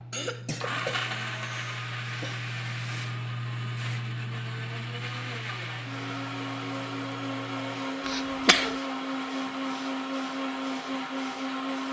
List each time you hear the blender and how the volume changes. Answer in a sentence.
You can hear the blender from 0.0 to 11.8 s, getting quieter then louder.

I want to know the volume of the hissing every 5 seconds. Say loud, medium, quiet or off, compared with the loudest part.
loud, medium, quiet.